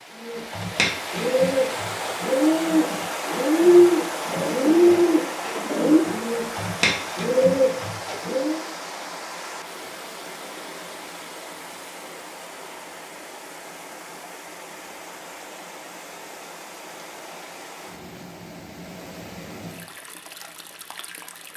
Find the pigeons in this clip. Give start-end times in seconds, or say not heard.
0.2-8.6.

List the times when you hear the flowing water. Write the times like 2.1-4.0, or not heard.
0.0-21.5.